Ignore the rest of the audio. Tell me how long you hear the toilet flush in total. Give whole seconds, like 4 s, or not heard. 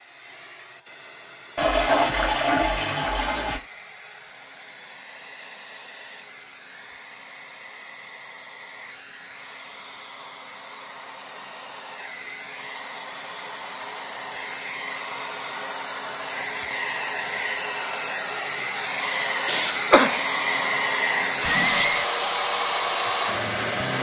2 s.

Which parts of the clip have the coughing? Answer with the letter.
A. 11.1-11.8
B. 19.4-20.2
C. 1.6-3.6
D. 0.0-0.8
B.